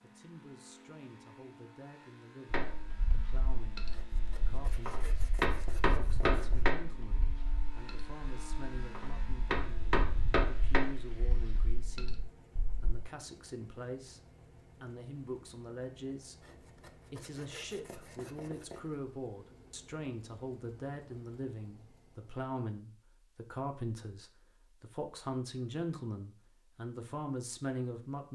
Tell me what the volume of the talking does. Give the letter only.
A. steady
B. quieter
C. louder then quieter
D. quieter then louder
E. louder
E.